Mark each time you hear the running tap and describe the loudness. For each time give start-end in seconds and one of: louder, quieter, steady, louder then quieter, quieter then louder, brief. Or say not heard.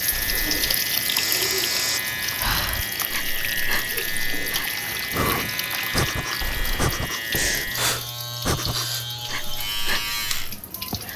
0.0-11.1 quieter.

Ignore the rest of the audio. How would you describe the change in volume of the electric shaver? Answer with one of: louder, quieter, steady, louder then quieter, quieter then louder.
steady.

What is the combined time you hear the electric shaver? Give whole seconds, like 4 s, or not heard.
11 s.